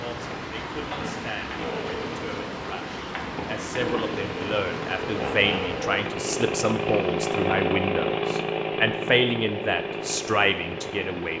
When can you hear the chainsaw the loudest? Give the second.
8 s.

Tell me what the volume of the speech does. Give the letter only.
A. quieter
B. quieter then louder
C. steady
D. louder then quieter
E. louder
E.